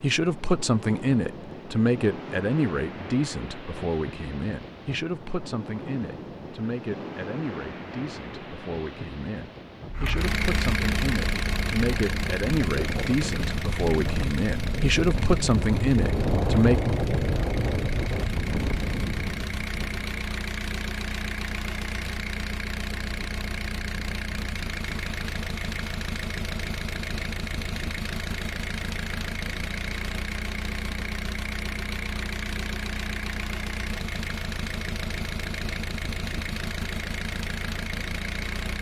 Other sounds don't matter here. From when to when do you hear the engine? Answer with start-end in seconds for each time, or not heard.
9.9-38.7.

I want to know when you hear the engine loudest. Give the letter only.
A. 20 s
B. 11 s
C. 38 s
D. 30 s
B.